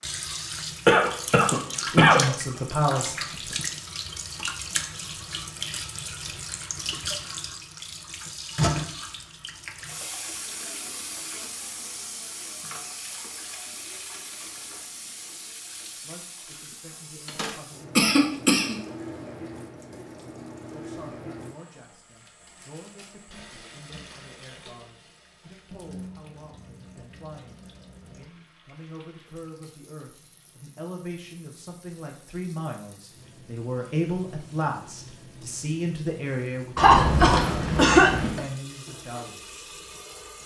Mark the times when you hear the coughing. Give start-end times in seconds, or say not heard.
0.8-2.2, 17.9-18.8, 36.8-38.4.